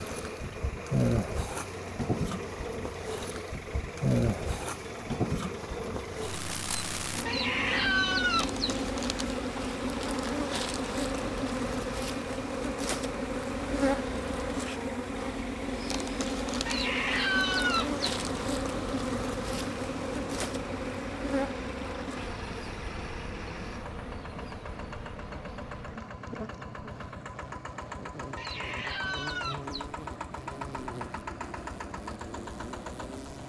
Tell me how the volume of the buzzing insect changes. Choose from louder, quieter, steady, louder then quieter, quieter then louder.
quieter.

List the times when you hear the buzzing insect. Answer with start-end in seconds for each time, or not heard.
0.0-33.4.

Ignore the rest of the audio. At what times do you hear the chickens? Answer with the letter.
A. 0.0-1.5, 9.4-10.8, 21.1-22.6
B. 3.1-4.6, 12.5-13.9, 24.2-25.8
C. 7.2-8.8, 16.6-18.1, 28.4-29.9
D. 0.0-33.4
C.